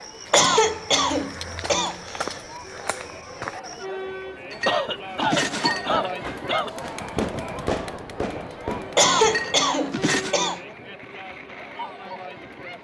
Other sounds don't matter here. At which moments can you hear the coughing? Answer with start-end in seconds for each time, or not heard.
0.3-2.4, 4.7-6.7, 8.9-10.6.